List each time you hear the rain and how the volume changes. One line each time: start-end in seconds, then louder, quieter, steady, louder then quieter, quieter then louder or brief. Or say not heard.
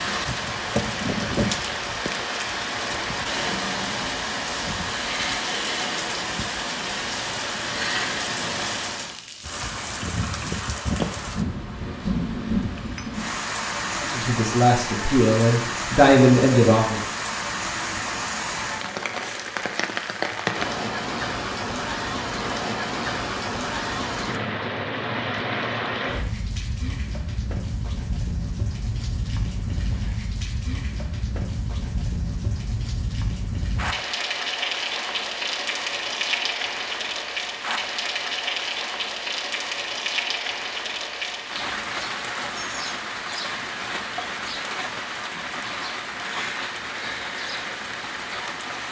0.0-48.8 steady.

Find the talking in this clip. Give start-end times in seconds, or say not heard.
14.0-17.0.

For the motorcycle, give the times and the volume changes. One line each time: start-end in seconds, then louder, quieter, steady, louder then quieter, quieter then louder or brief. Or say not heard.
not heard.